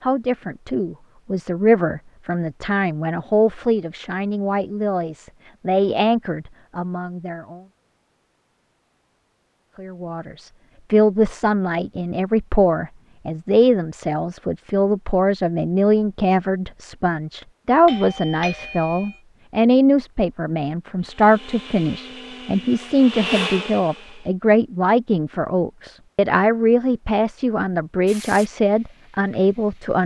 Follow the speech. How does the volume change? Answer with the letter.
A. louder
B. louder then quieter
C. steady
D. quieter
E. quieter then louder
C.